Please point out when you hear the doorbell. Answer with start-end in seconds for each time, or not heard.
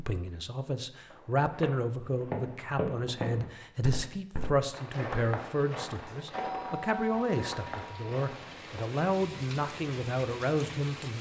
6.3-8.1.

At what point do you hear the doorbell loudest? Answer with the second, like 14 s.
7 s.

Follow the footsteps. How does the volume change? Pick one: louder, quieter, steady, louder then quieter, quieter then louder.
quieter.